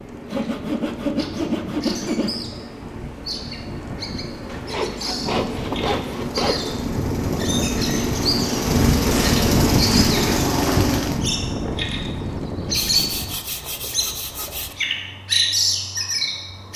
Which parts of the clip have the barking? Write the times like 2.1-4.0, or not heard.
not heard.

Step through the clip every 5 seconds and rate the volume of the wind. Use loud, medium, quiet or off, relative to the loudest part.
quiet, loud, loud, off.